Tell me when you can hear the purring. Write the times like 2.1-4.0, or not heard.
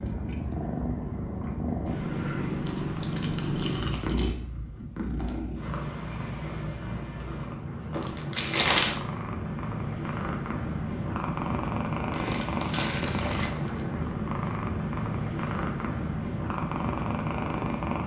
0.0-18.0.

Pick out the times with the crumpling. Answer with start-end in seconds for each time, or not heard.
2.6-4.4, 7.9-8.9, 12.1-13.8.